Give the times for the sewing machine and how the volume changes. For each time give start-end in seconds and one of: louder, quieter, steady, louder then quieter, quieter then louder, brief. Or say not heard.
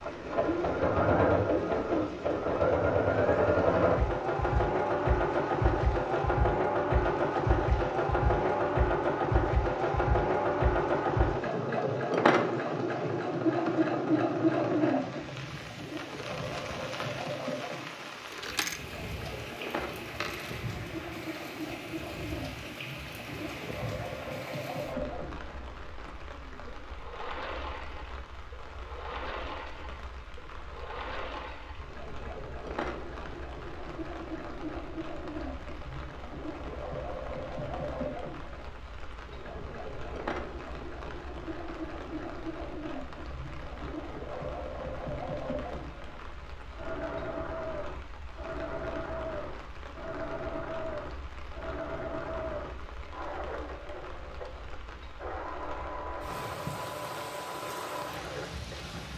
0.0-59.1 quieter.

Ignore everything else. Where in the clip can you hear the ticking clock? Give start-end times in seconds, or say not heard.
not heard.